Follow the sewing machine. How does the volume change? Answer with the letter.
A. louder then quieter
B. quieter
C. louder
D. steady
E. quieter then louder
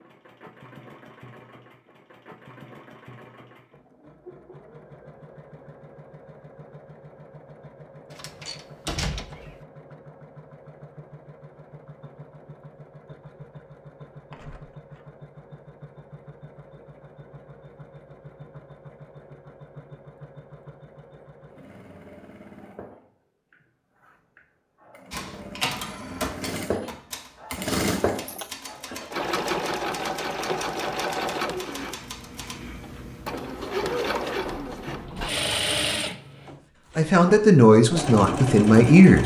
C.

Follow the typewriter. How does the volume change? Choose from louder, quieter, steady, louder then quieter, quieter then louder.
quieter.